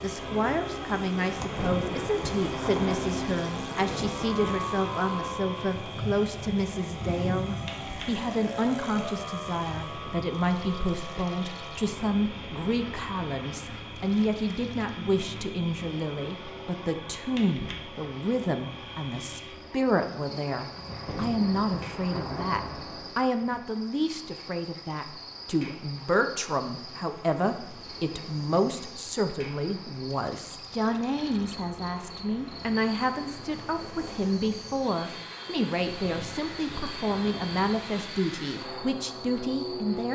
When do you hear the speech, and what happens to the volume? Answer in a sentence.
The speech can be heard from 0.0 to 40.0 s, at a steady volume.